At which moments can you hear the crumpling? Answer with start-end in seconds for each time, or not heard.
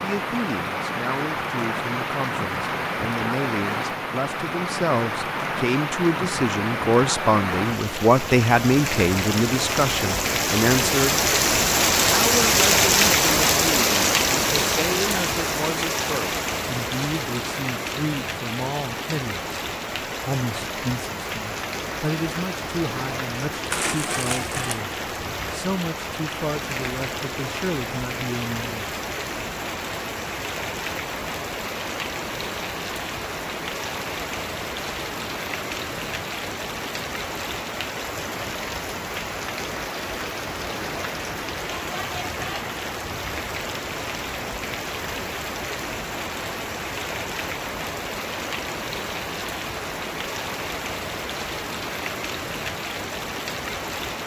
23.6-24.8.